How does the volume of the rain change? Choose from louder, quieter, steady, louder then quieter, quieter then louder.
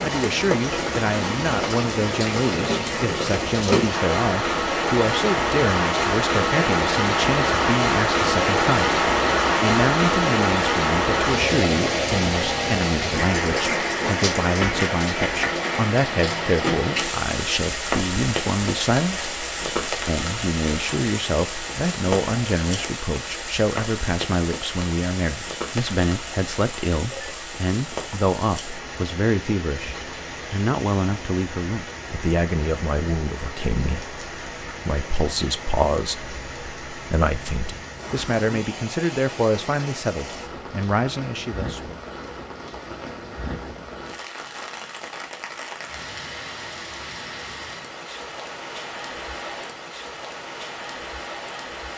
quieter.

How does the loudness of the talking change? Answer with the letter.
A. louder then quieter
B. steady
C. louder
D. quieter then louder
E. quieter
B.